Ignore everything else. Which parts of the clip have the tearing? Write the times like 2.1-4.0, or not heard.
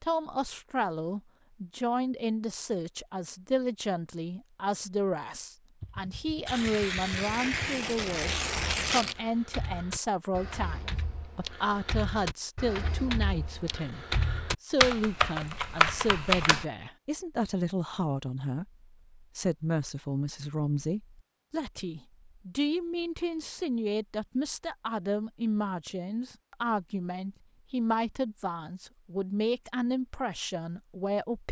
6.5-9.2.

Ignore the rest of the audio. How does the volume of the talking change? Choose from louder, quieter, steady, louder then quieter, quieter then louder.
steady.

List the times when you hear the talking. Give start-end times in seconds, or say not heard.
0.0-31.4.